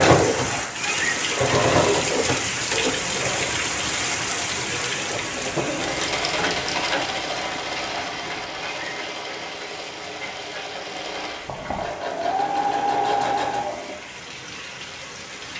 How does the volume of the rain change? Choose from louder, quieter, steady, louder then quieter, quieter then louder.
quieter.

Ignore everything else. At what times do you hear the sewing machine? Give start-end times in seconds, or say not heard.
0.0-3.6, 5.0-13.9.